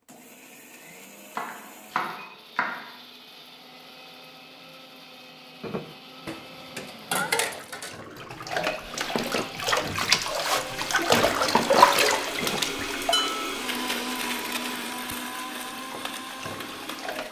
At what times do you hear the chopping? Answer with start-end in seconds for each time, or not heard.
1.4-2.8.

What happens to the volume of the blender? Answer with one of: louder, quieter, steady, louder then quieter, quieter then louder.
louder.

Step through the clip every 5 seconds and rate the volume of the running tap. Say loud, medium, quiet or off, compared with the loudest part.
off, medium, loud, quiet.